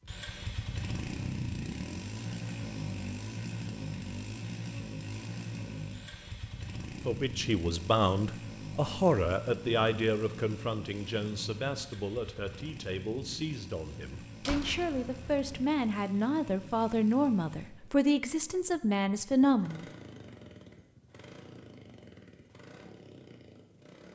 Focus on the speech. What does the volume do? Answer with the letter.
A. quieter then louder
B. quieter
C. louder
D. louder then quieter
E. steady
A.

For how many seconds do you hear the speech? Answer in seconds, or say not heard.
13 s.